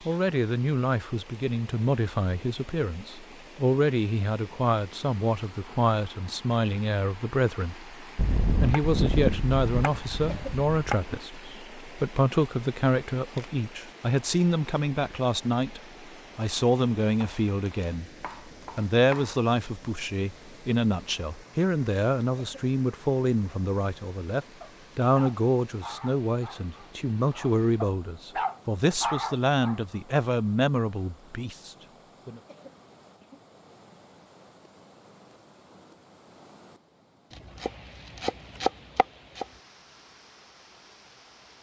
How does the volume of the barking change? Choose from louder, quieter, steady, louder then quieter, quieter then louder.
quieter then louder.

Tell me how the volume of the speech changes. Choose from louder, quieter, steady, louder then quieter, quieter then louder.
steady.